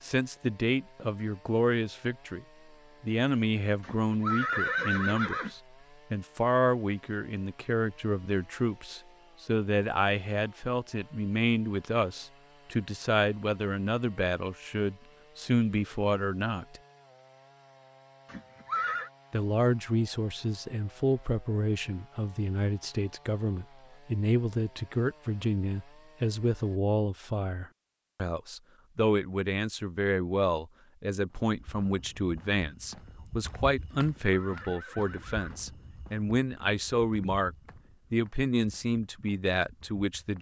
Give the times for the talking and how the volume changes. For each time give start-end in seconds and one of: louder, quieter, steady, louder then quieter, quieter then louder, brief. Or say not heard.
0.0-16.8 steady
19.3-40.3 steady.